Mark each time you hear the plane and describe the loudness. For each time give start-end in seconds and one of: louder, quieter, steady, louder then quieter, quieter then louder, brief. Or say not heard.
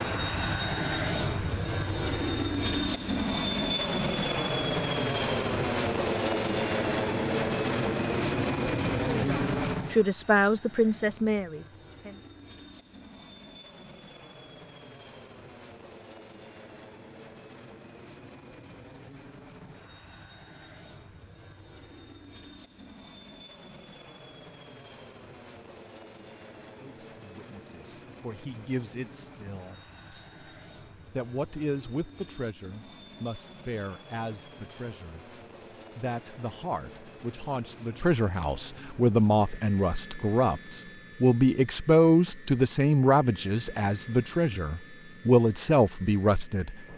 0.0-46.9 quieter.